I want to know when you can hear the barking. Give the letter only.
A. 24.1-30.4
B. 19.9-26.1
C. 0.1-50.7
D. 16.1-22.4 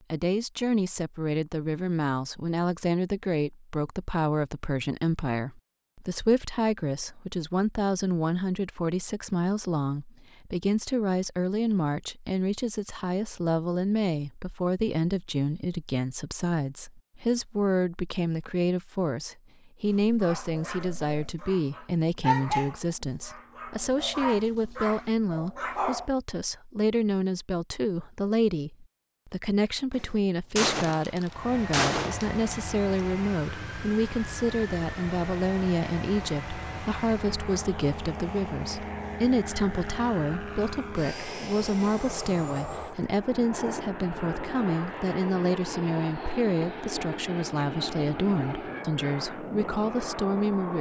B.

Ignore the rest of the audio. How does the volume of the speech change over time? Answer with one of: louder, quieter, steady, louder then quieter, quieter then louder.
steady.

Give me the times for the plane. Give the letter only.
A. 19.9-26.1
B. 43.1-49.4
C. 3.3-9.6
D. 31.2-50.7
D.